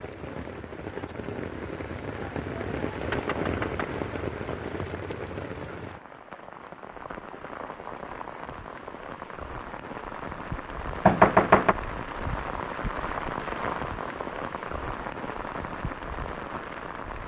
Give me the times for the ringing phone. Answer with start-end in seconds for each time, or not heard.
not heard.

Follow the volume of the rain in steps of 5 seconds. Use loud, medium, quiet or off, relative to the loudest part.
loud, medium, loud, loud.